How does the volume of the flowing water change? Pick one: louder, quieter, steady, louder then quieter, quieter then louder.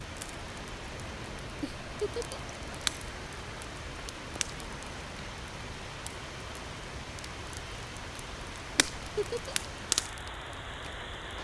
steady.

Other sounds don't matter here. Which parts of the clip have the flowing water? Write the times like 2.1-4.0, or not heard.
0.0-11.3.